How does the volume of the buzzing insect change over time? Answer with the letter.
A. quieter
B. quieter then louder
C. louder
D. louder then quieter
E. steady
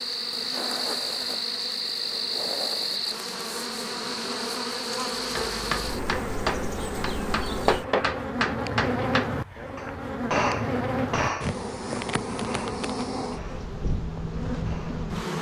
E.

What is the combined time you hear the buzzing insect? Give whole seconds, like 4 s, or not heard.
15 s.